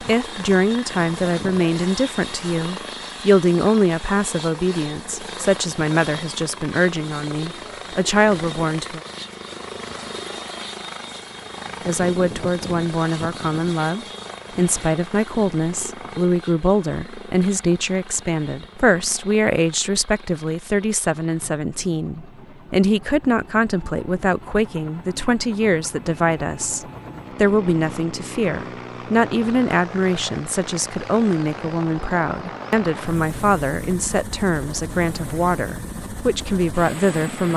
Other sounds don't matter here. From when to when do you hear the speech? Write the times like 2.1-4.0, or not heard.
0.0-9.0, 11.8-37.5.